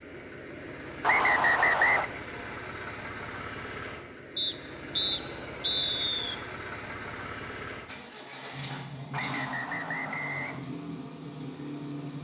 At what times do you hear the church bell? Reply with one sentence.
The church bell can't be heard in this clip.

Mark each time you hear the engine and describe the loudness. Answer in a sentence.
You can hear the engine from 0.0 to 12.1 s, at a steady volume.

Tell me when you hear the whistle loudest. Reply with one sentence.
The volume of the whistle peaks at 2 seconds.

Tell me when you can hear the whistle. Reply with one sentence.
You can hear the whistle from 1.0 to 2.1 s, from 4.3 to 6.3 s and from 9.1 to 10.6 s.